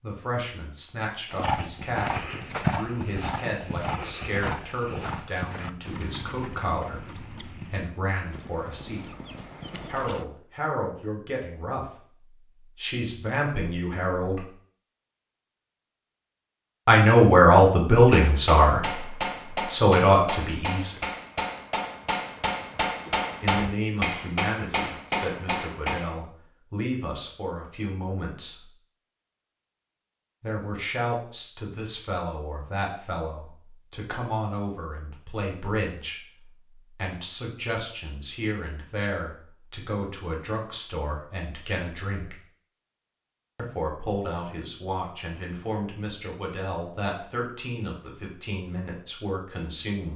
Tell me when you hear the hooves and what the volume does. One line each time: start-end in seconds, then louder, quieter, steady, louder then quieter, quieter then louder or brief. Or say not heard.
1.3-10.2 quieter.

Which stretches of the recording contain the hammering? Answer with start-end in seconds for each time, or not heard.
18.0-26.1.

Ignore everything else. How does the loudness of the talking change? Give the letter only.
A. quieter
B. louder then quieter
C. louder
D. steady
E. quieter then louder
B.